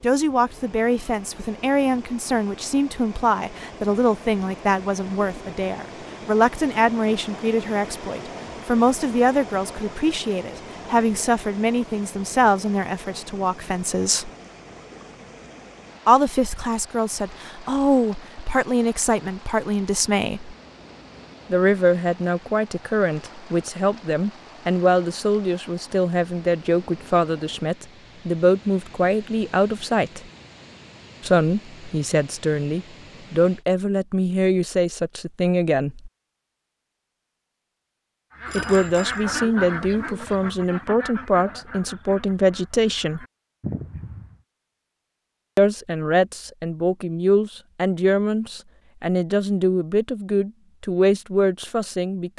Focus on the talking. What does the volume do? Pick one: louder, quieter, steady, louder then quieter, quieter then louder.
steady.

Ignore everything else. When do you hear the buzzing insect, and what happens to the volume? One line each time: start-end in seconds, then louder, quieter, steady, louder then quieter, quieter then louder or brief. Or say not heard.
not heard.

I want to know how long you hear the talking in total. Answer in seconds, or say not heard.
44 s.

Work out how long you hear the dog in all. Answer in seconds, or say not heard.
not heard.